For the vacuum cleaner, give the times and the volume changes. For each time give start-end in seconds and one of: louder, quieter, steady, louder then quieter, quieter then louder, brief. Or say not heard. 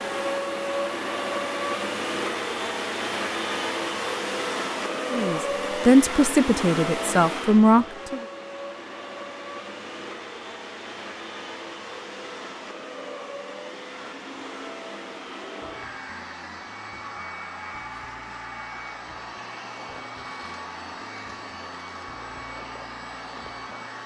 0.0-24.0 quieter.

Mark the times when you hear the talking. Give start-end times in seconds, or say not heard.
5.1-8.2.